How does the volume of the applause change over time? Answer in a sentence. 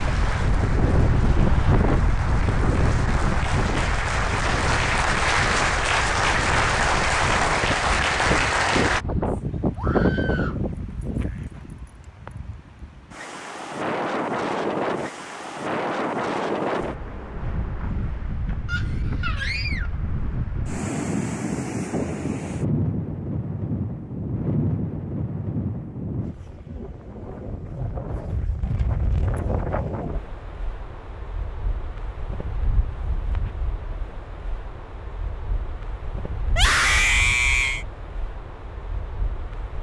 The loudness of the applause goes up.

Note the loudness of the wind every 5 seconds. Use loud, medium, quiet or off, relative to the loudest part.
loud, loud, loud, loud, loud, medium, quiet, quiet.